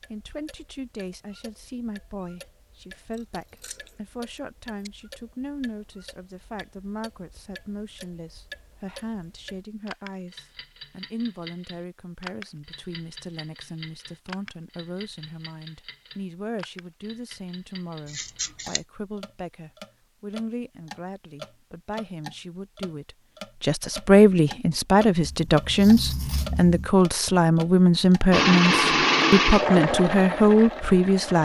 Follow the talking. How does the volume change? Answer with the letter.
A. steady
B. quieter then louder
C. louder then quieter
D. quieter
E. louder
E.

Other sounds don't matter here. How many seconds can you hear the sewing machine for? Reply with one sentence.
You can hear the sewing machine for 3 seconds altogether.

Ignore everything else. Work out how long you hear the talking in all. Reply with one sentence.
You can hear the talking for 31 seconds altogether.